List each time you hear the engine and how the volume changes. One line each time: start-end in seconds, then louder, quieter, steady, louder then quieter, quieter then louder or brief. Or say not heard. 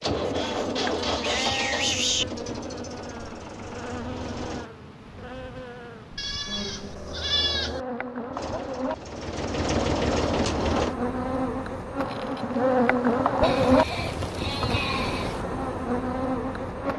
0.0-4.7 quieter
8.3-10.9 brief.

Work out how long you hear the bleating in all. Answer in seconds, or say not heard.
6 s.